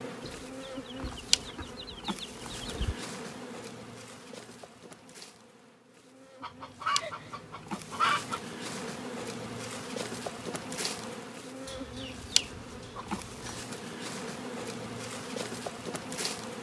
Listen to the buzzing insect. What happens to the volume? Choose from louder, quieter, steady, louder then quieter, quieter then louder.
quieter then louder.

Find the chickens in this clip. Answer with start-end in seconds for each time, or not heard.
0.2-3.0, 6.4-8.4, 11.7-13.7.